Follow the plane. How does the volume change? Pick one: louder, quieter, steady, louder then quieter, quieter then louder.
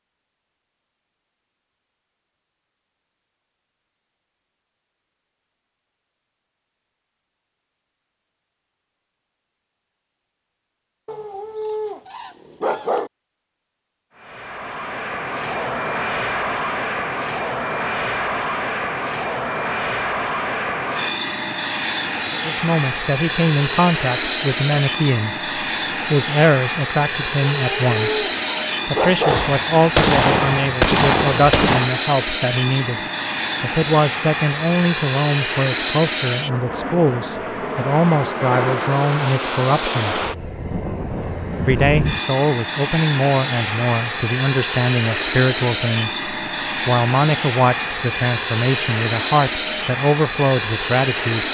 steady.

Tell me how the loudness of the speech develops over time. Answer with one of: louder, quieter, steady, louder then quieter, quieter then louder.
steady.